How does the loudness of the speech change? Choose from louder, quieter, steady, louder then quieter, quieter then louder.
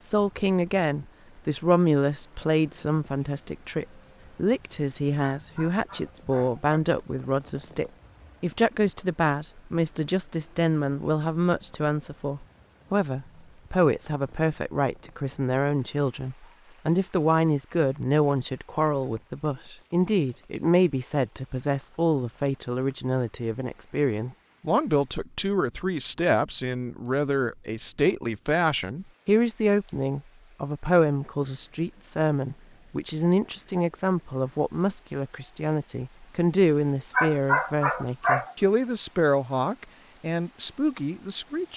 steady.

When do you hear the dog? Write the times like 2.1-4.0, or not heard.
5.4-6.6, 37.1-38.5.